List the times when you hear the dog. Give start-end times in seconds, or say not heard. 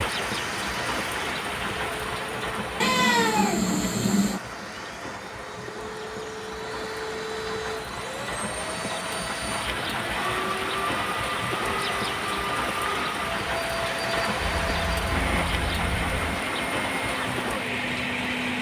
not heard.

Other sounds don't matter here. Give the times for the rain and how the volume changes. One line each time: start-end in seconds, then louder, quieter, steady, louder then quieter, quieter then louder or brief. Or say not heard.
0.0-18.5 quieter then louder.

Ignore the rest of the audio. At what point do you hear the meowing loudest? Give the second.
3 s.